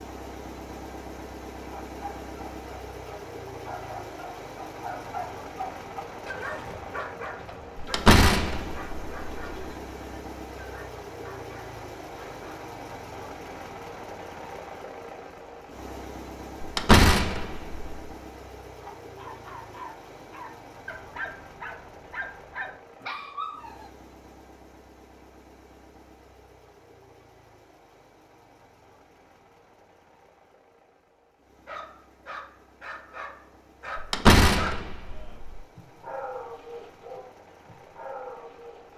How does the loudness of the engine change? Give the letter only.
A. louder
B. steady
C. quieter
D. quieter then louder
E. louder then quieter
C.